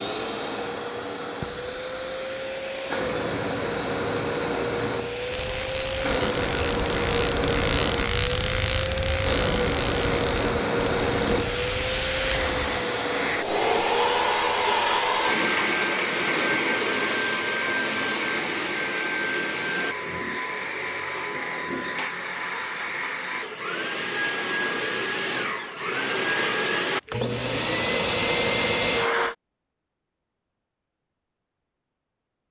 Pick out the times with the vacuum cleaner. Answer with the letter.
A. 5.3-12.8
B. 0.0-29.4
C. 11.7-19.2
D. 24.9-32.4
B.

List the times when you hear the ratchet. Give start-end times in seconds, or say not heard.
5.3-12.8.